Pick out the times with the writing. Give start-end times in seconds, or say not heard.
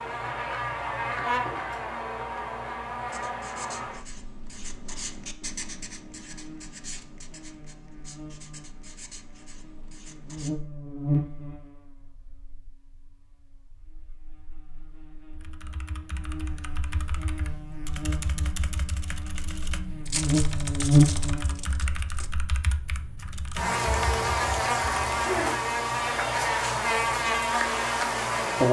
3.1-10.5.